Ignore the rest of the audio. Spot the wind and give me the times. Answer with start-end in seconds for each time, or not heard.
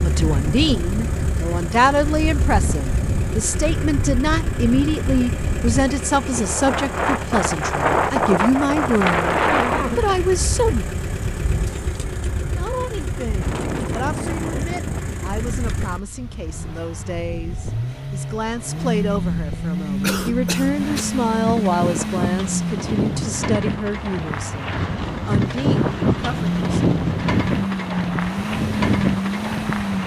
0.0-30.0.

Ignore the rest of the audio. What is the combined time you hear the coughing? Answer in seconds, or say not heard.
2 s.